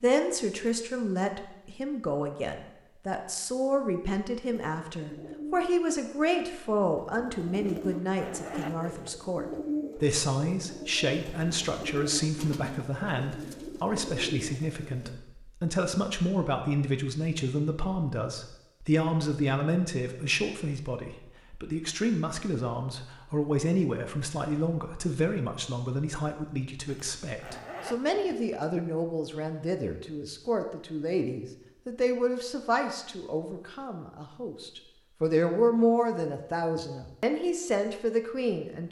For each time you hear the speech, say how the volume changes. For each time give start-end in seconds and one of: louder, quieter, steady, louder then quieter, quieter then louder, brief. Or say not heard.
0.0-38.8 steady.